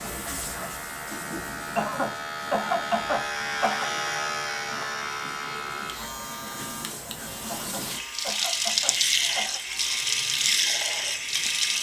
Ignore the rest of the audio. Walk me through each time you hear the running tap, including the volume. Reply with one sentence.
You can hear the running tap from 0.0 to 11.7 s, getting quieter then louder.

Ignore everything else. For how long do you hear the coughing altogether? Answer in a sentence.
The coughing can be heard for 4 seconds in total.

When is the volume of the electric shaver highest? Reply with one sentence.
The loudest moment of the electric shaver is at 4 seconds.